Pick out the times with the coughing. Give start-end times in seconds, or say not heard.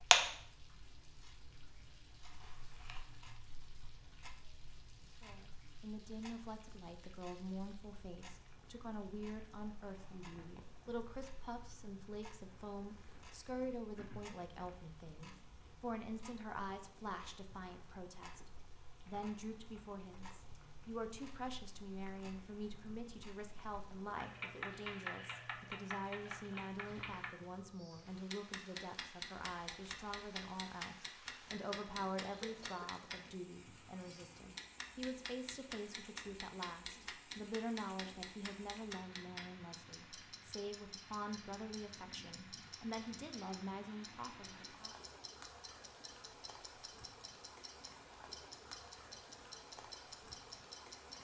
13.9-14.3, 32.1-32.9.